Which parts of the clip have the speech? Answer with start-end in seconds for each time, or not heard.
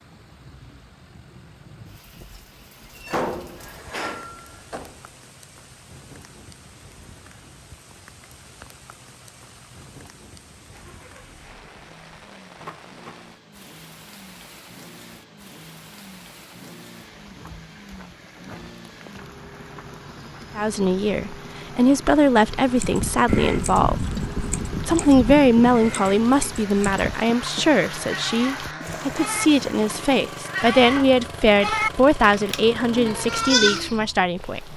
20.6-24.2, 24.9-34.7.